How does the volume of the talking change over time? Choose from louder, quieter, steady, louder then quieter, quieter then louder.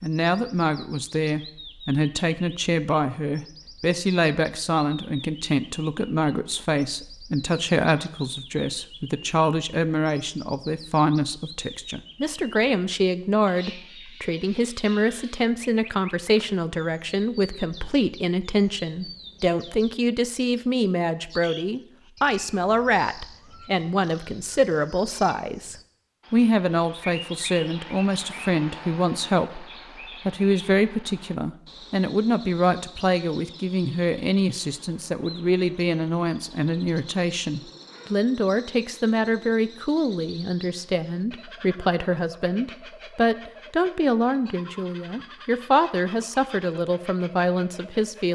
steady.